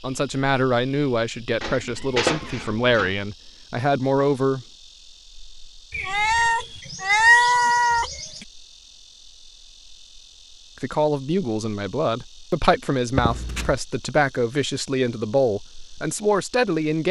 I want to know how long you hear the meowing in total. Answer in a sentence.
The meowing can be heard for 5 seconds in total.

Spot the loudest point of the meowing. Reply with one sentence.
The volume of the meowing peaks at 7 seconds.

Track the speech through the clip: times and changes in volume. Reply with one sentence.
You can hear the speech from 0.0 to 4.7 s, getting quieter then louder; and from 10.8 to 17.0 s, at a steady volume.